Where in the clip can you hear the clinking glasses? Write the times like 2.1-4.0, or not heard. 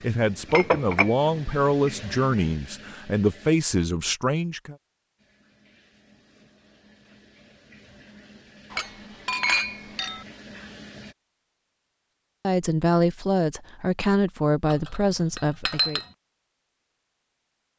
0.5-1.4, 8.7-10.2, 14.7-16.1.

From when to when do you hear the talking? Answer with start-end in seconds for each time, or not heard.
0.0-4.8, 12.4-16.0.